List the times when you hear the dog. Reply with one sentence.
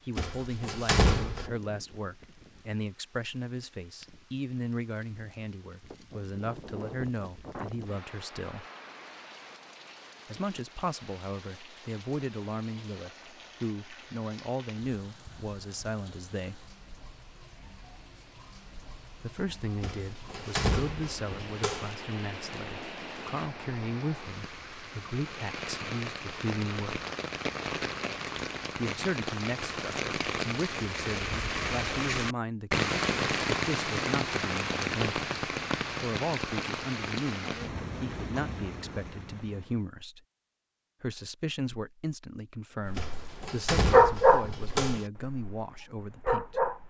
You can hear the dog from 42.9 to 46.8 s.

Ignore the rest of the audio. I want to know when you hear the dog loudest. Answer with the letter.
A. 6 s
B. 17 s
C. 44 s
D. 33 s
C.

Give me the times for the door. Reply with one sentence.
You can hear the door from 0.1 to 1.5 s, from 19.8 to 21.9 s and from 43.0 to 45.0 s.